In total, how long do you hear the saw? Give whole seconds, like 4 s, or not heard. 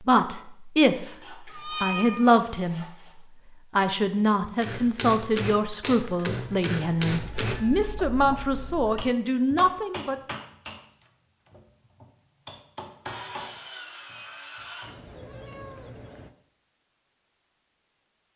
4 s.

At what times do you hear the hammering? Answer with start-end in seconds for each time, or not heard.
4.6-14.9.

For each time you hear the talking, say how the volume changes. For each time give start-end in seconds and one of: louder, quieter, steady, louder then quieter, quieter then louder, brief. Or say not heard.
0.1-2.9 brief
3.8-10.2 steady.